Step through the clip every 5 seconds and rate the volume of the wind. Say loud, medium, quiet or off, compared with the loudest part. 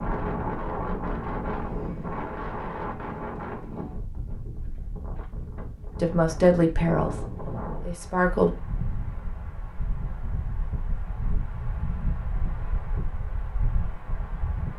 loud, medium, medium.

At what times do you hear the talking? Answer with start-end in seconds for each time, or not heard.
6.0-8.5.